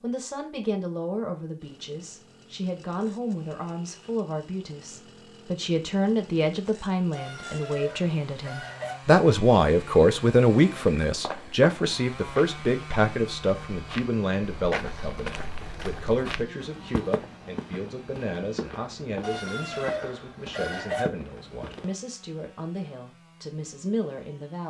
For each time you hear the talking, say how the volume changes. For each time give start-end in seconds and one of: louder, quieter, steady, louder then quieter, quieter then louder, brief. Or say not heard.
0.0-24.6 louder then quieter.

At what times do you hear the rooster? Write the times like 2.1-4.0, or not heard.
7.1-8.9, 19.2-21.1.